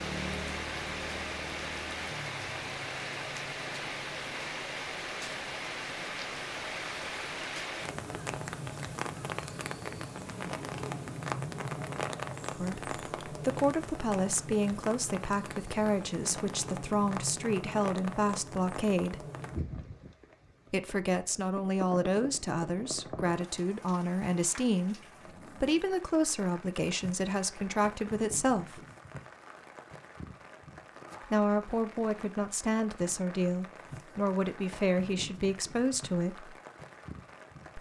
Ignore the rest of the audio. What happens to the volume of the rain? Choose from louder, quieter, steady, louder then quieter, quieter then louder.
quieter.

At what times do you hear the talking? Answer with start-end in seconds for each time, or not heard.
12.6-19.2, 20.7-28.9, 31.2-36.5.